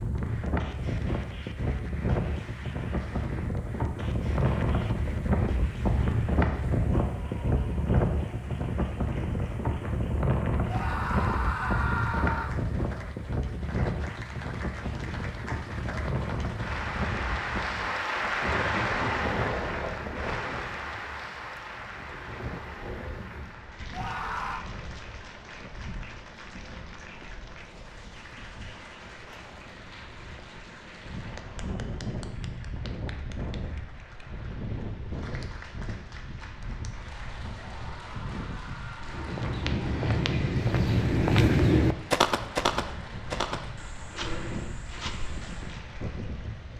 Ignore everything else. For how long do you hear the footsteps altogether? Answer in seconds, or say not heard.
7 s.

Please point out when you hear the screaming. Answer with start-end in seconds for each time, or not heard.
10.7-12.6, 23.9-24.6, 37.6-39.4.